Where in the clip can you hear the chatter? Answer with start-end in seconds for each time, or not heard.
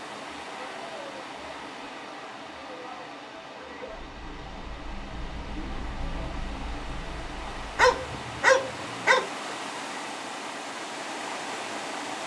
0.0-8.0.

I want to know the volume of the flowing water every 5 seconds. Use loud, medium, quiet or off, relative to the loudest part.
medium, loud, loud.